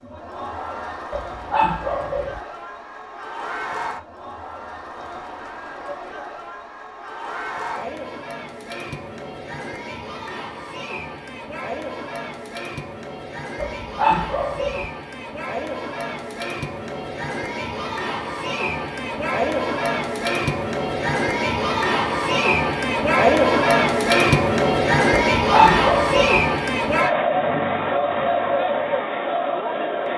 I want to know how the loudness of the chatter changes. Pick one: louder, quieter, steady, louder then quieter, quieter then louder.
louder.